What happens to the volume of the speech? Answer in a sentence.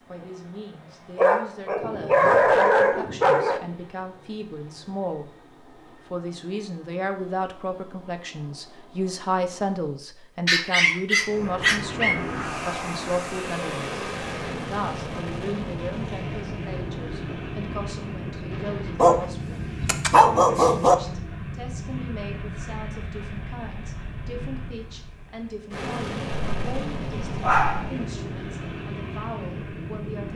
The volume of the speech goes up, then down.